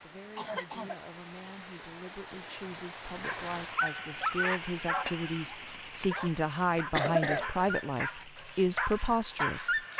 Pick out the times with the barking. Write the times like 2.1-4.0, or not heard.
3.2-9.9.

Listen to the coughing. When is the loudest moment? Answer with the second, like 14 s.
7 s.